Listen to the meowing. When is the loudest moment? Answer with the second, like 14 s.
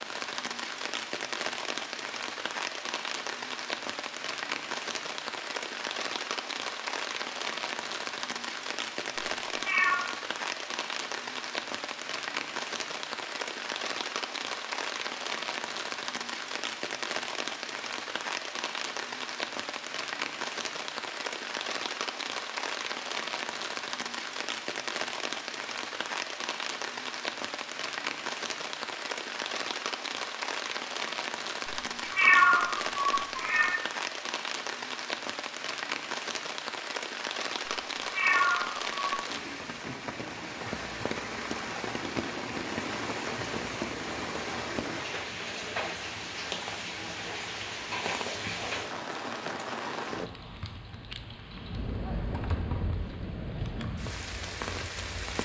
32 s.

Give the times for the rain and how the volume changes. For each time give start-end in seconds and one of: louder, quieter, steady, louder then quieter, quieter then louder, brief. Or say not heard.
0.0-55.3 steady.